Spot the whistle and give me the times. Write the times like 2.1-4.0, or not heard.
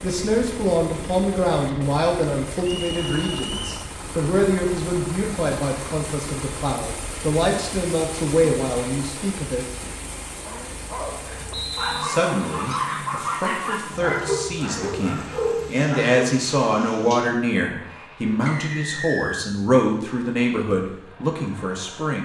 2.8-3.8, 11.5-12.1, 18.4-19.4.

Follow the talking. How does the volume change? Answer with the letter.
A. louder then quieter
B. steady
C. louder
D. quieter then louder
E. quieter
B.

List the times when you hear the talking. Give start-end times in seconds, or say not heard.
0.0-9.7, 12.0-22.2.